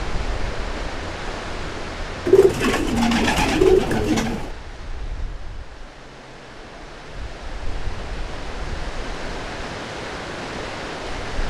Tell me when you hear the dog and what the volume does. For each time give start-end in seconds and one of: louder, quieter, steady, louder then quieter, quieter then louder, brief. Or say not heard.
not heard.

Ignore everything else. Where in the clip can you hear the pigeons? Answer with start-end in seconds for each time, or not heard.
2.2-4.5.